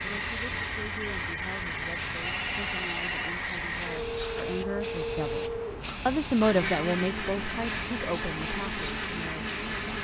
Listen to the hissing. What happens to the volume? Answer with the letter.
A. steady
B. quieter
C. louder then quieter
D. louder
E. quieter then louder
A.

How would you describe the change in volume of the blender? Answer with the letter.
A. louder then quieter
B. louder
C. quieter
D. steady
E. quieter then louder
D.